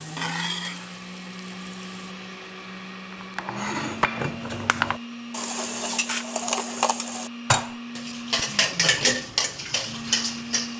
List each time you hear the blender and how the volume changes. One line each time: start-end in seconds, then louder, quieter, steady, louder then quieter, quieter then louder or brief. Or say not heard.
0.0-10.7 steady.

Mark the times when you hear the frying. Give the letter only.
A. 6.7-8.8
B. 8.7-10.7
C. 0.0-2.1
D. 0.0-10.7
C.